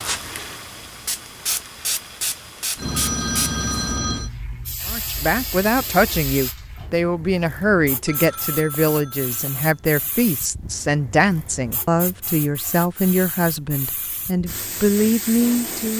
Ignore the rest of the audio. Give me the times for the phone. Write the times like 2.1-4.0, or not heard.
2.8-4.3, 8.1-9.7.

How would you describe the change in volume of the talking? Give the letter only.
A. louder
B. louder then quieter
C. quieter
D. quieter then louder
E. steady
E.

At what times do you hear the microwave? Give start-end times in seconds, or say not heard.
not heard.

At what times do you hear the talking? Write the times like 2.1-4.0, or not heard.
4.8-15.9.